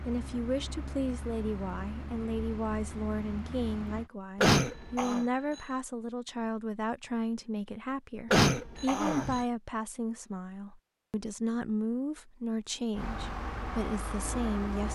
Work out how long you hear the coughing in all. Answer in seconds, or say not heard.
2 s.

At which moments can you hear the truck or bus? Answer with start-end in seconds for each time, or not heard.
0.0-4.1, 12.9-14.9.